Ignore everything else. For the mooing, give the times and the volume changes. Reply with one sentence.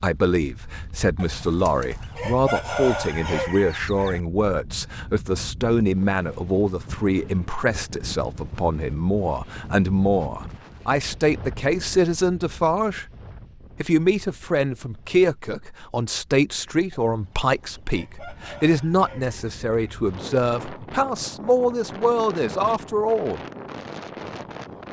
The mooing can't be heard in this clip.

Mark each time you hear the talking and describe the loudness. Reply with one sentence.
The talking can be heard from 0.0 to 13.1 s, at a steady volume; and from 13.8 to 23.4 s, at a steady volume.